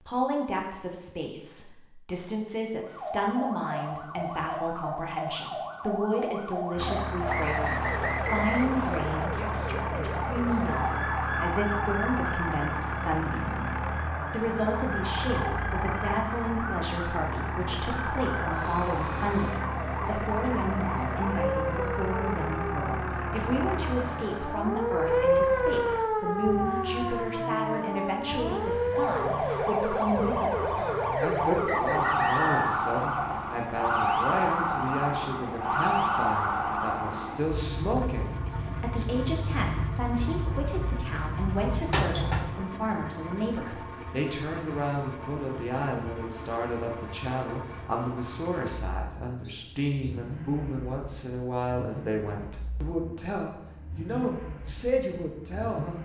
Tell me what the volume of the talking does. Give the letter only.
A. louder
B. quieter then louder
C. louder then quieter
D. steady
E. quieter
D.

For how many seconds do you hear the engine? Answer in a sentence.
You can hear the engine for 49 seconds altogether.